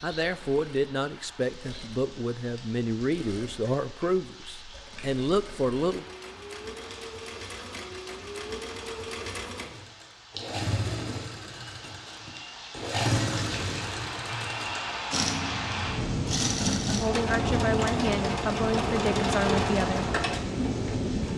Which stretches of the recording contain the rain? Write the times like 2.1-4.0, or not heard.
0.0-21.3.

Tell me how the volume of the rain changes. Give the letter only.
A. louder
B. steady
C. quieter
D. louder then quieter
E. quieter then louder
A.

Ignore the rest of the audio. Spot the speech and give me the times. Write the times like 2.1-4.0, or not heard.
0.0-6.0, 16.9-20.1.